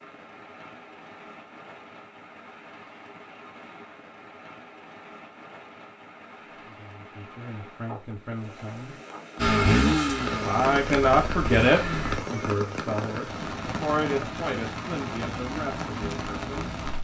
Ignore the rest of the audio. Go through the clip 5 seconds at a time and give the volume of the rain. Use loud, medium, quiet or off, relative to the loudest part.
quiet, quiet, loud, loud.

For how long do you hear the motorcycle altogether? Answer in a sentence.
You can hear the motorcycle for 3 seconds altogether.